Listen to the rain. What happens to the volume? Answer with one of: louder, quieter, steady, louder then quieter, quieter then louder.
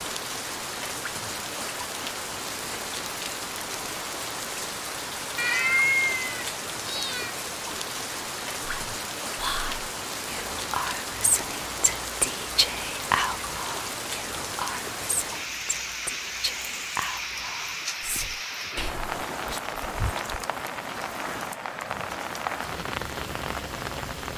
steady.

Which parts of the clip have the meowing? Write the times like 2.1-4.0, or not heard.
5.3-7.3.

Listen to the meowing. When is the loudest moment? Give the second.
6 s.